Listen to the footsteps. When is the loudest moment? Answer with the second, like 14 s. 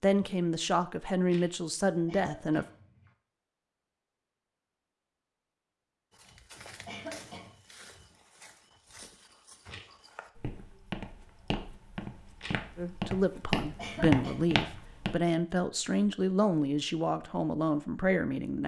14 s.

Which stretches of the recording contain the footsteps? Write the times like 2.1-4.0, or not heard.
6.2-15.2.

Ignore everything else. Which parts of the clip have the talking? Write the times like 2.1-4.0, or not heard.
0.0-2.6, 12.8-18.6.